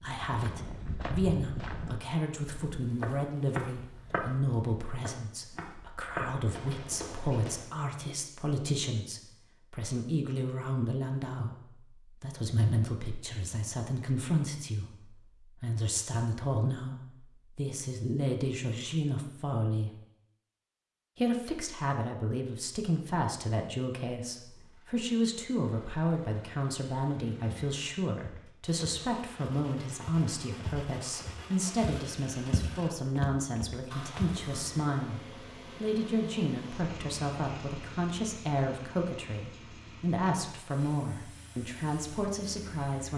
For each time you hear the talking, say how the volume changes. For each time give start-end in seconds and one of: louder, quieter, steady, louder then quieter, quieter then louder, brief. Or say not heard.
0.0-19.9 steady
21.1-43.1 steady.